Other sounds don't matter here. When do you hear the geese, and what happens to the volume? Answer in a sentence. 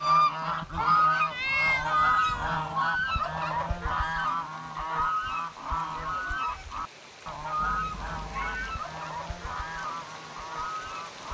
The geese can be heard from 0.0 to 11.2 s, getting quieter.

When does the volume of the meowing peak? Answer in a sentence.
The volume of the meowing peaks at 2 seconds.